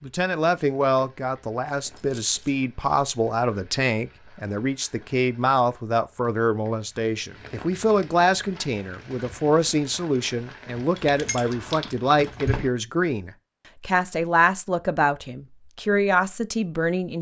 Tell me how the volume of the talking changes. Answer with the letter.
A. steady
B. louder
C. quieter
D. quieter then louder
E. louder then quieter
A.